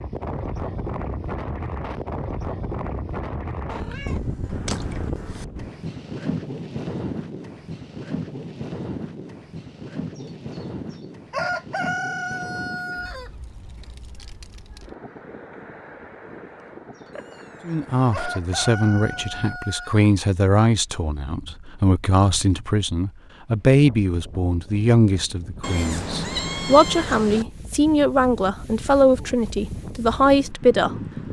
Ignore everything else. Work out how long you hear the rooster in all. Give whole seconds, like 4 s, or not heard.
5 s.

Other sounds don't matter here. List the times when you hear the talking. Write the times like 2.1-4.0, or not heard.
17.6-31.2.